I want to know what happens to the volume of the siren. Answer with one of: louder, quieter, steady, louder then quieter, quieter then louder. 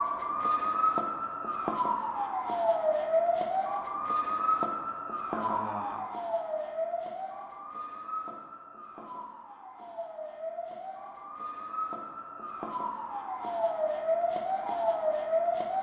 quieter then louder.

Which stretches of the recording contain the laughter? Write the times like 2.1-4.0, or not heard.
5.3-6.0.